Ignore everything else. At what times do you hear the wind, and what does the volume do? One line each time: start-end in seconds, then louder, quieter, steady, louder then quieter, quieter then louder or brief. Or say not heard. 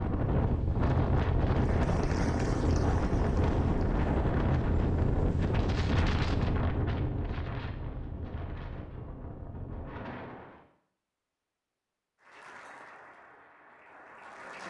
0.0-10.7 quieter.